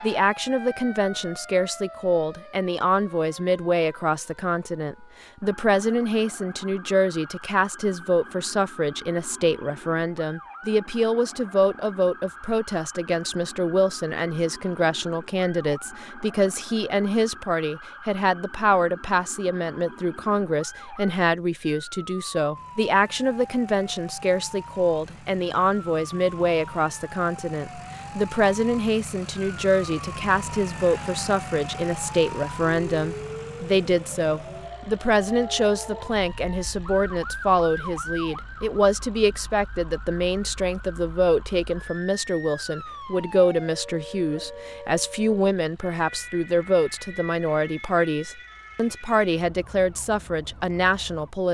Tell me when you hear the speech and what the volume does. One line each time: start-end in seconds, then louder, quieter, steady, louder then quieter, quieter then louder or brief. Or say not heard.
0.0-51.4 steady.